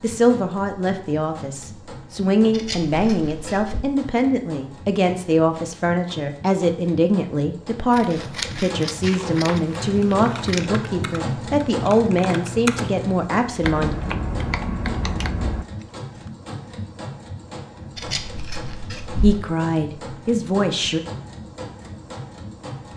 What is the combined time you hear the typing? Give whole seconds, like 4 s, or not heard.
7 s.